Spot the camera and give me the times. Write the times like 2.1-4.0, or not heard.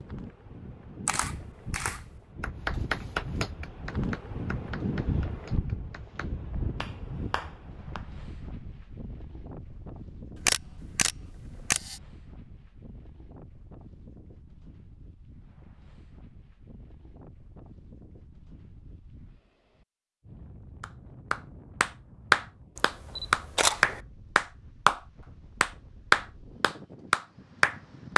1.1-2.0, 10.3-12.0, 22.8-24.0.